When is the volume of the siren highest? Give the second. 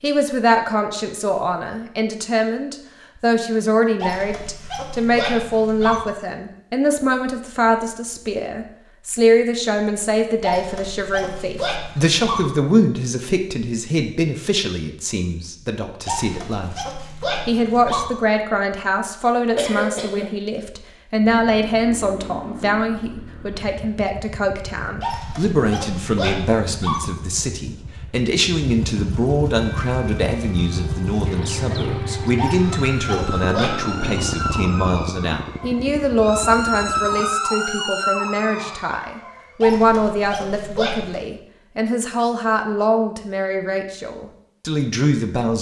37 s.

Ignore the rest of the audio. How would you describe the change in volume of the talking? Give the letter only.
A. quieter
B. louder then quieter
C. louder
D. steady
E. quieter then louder
D.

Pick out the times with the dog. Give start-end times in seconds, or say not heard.
4.0-6.0, 10.4-12.4, 16.1-18.1, 25.0-27.0, 32.4-34.0, 39.6-41.2.